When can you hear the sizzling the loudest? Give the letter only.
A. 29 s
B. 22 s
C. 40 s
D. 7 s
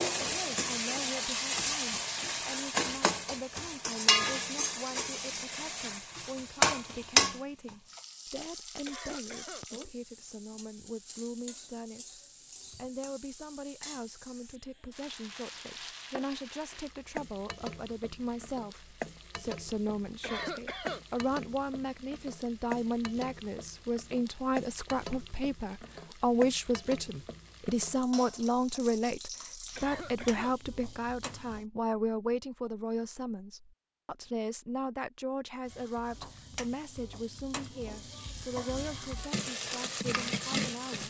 D.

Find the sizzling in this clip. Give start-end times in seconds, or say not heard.
0.0-31.6, 35.6-41.0.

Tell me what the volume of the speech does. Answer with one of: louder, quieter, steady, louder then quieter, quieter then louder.
louder then quieter.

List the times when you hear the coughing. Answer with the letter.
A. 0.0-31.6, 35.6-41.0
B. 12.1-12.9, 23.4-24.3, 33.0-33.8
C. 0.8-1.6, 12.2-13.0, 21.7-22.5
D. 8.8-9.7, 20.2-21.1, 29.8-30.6
D.